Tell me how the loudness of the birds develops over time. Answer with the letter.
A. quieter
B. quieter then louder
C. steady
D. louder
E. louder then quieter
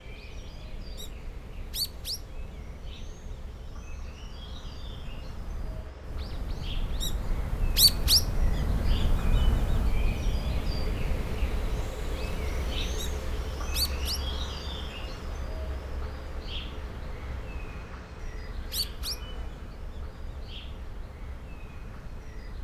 E.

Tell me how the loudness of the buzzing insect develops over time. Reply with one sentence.
The volume of the buzzing insect goes up, then down.